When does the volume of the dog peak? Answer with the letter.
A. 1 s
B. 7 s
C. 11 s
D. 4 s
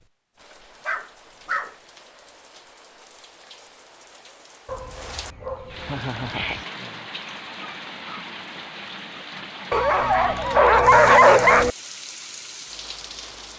C.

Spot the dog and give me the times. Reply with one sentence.
The dog can be heard from 0.5 to 1.8 s, from 4.7 to 6.7 s and from 9.7 to 11.7 s.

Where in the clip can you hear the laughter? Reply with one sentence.
You can hear the laughter from 5.8 to 6.7 s.